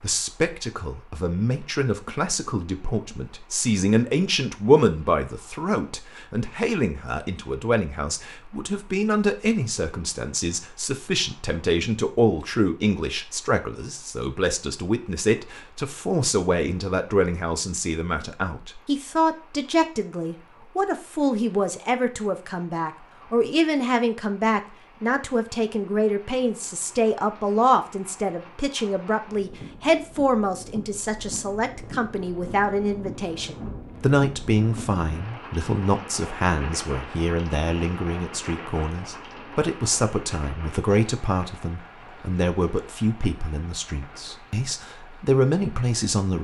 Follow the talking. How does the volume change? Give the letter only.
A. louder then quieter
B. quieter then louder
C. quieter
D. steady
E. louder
D.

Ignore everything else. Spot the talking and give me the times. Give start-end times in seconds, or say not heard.
0.0-46.4.